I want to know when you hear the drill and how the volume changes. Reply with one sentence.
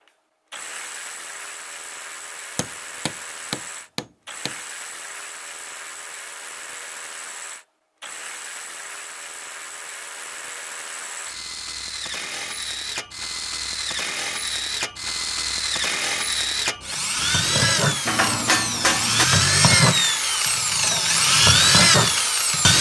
The drill can be heard from 0.1 to 22.7 s, getting louder.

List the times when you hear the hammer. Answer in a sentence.
The hammer can be heard from 2.5 to 4.5 s and from 18.1 to 19.2 s.